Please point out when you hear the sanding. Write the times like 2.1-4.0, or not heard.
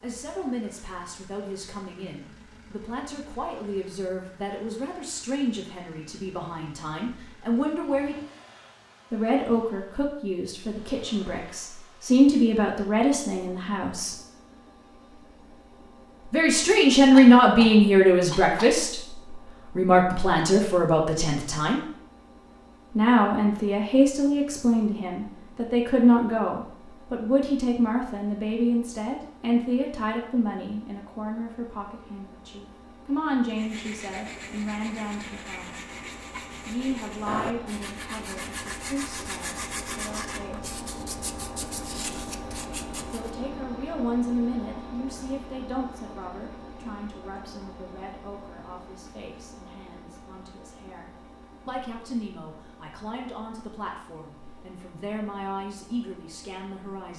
33.5-43.3.